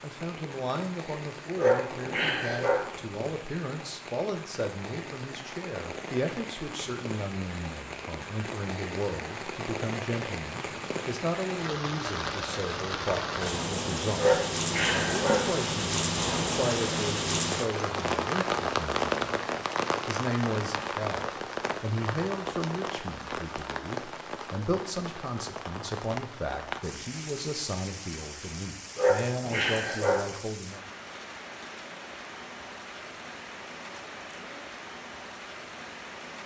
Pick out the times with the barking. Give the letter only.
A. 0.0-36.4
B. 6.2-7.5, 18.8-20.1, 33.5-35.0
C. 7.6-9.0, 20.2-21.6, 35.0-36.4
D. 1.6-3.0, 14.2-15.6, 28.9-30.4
D.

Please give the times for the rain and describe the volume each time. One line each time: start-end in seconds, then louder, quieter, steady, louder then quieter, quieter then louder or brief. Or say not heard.
0.0-36.4 louder then quieter.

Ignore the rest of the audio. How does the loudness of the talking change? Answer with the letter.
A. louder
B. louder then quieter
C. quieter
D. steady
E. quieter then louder
D.